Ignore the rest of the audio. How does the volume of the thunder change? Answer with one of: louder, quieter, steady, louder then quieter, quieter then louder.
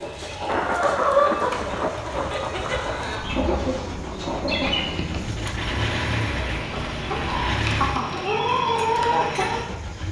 quieter.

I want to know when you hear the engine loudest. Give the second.
6 s.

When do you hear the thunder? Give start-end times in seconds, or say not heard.
0.5-5.0.